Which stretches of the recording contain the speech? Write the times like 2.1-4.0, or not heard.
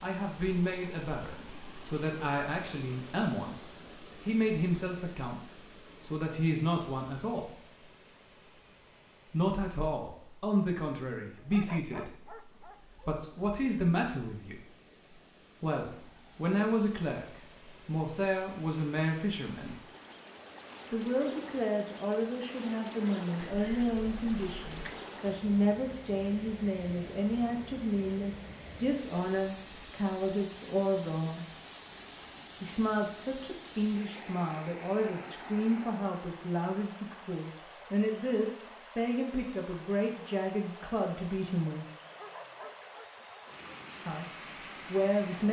0.0-7.6, 9.3-14.6, 15.6-19.8, 20.9-31.4, 32.6-41.9, 44.0-45.4.